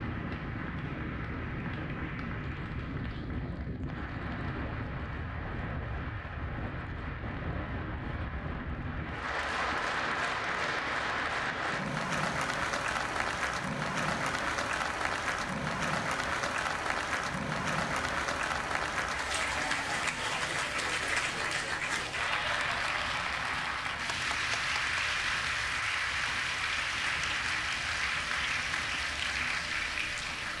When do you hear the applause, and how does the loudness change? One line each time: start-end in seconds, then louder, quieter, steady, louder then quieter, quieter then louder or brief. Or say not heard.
0.0-30.5 louder.